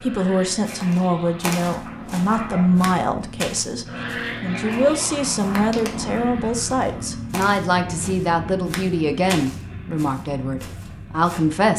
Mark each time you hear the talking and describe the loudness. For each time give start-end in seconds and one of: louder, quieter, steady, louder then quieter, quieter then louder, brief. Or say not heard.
0.0-11.7 steady.